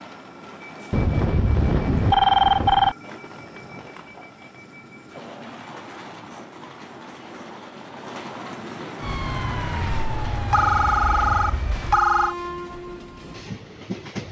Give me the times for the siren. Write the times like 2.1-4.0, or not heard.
9.0-12.1.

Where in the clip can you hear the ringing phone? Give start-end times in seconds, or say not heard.
0.9-3.0, 10.5-12.3.